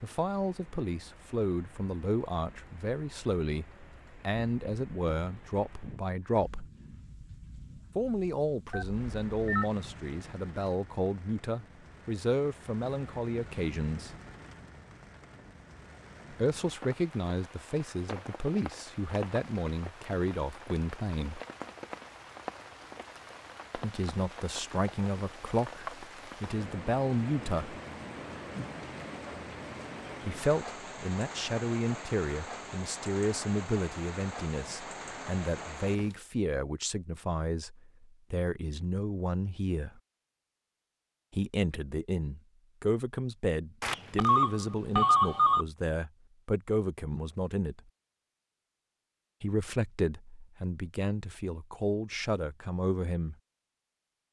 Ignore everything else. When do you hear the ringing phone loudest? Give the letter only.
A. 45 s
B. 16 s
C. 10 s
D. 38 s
A.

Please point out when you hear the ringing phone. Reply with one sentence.
You can hear the ringing phone from 8.7 to 9.7 s and from 43.8 to 45.6 s.